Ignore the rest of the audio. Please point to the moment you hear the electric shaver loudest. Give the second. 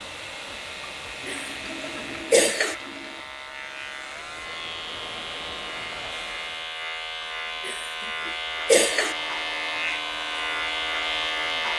11 s.